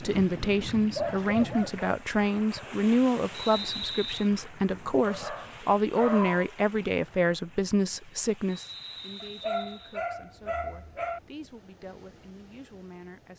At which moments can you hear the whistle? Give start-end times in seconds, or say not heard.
3.3-4.3, 8.4-10.0.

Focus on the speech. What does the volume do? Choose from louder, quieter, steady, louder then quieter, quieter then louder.
quieter.